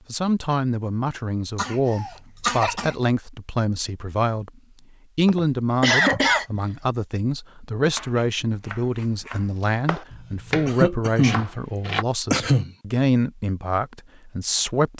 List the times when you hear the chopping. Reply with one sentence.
You can hear the chopping from 7.9 to 12.1 s.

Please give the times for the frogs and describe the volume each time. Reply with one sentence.
The frogs can't be heard in this clip.